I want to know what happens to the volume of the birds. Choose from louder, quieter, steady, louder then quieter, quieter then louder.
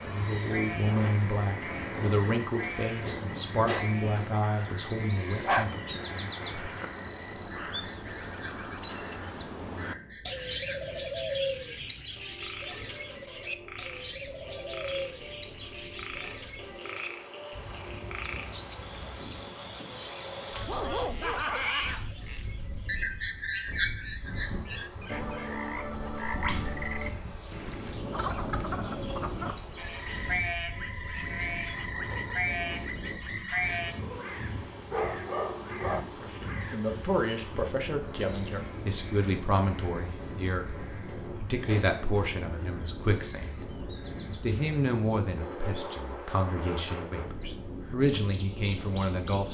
quieter.